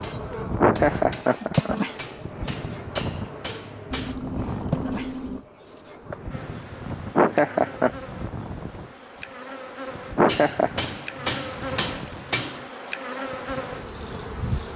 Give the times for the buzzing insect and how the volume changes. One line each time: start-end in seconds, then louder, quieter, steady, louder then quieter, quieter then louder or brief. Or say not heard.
0.0-14.7 quieter then louder.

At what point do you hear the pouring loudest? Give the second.
5 s.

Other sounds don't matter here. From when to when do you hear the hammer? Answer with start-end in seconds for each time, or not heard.
0.0-4.2, 10.2-12.7.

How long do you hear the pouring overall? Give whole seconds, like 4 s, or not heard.
3 s.